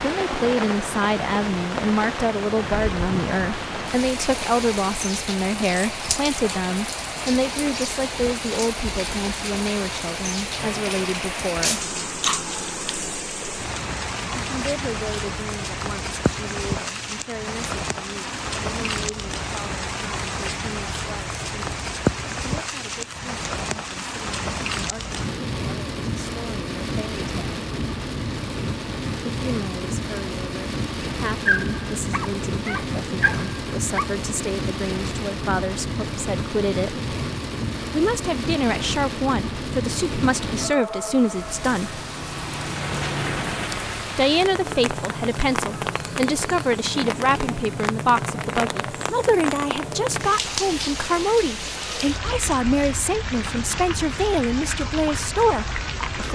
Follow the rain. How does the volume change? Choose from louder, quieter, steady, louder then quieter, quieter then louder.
steady.